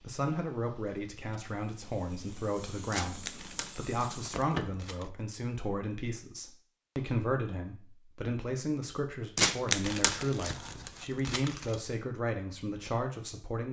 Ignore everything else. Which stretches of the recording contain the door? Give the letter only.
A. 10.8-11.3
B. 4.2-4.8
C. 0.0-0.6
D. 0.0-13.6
B.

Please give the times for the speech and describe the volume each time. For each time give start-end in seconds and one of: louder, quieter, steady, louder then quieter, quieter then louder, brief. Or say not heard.
0.0-13.6 steady.